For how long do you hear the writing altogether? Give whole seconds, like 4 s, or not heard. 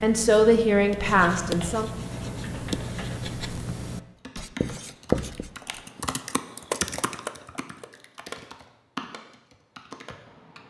6 s.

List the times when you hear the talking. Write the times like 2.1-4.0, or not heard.
0.0-1.9.